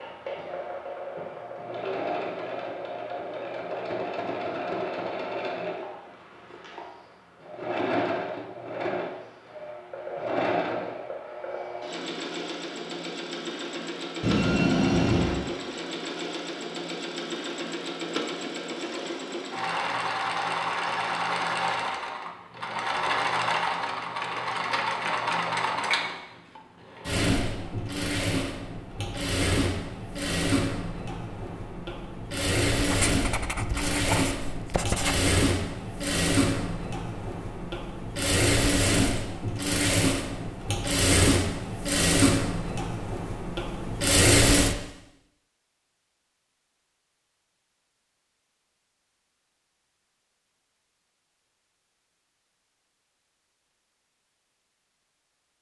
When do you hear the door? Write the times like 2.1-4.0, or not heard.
14.2-15.4.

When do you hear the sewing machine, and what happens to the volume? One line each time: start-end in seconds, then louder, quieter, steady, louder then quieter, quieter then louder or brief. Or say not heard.
0.0-44.8 louder.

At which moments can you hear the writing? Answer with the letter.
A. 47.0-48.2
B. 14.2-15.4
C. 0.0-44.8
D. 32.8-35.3
D.